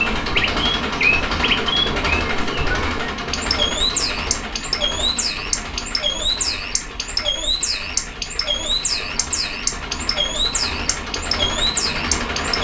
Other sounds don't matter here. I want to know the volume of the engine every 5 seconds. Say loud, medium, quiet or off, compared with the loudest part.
loud, medium, loud.